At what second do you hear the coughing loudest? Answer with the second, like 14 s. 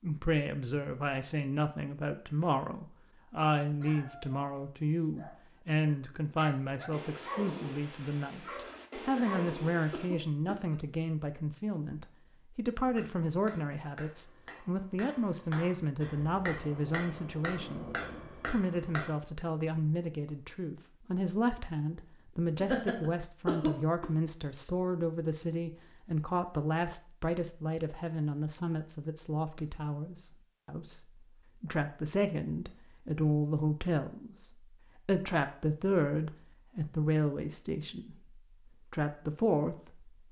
24 s.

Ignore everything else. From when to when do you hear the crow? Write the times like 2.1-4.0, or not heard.
not heard.